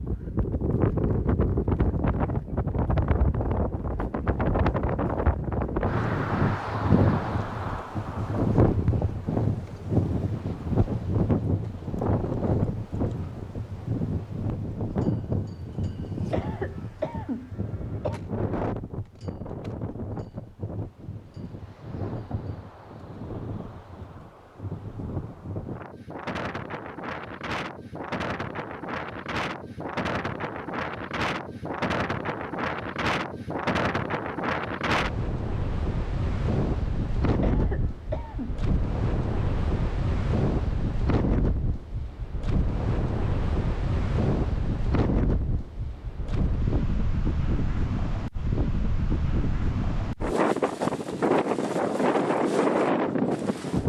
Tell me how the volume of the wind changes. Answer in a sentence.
The volume of the wind goes down, then up.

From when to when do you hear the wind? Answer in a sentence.
The wind can be heard from 0.0 to 53.8 s.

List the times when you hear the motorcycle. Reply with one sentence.
You can't hear the motorcycle here.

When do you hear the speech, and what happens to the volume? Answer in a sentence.
You can't hear the speech here.